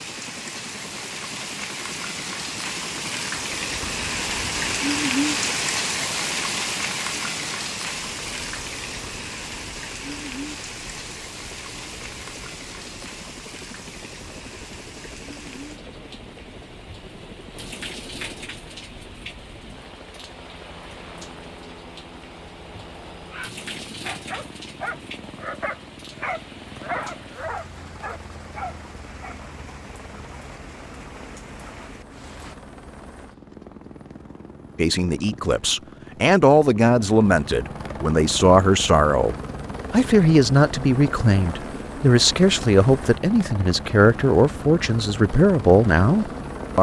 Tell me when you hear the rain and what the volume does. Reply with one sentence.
The rain can be heard from 0.0 to 32.5 s, getting quieter.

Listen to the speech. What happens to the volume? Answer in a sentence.
The loudness of the speech stays about the same.